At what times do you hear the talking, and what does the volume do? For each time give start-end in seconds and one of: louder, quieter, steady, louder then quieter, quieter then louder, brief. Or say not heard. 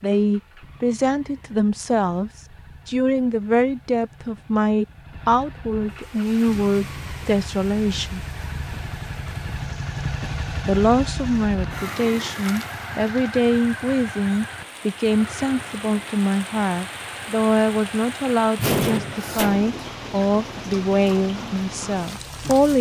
0.0-8.2 steady
10.7-22.7 steady.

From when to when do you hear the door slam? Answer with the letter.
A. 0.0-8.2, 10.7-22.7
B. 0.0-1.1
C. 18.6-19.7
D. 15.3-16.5
C.